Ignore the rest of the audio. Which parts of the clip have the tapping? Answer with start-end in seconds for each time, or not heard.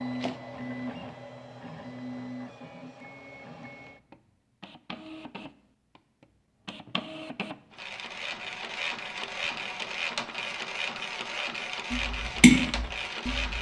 11.9-13.5.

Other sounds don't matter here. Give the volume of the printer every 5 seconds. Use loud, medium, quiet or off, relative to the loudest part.
medium, loud, loud.